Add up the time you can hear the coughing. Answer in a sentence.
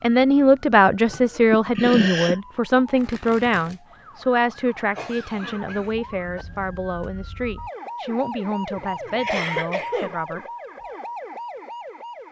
You can hear the coughing for 4 seconds altogether.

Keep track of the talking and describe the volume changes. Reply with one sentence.
The loudness of the talking goes down.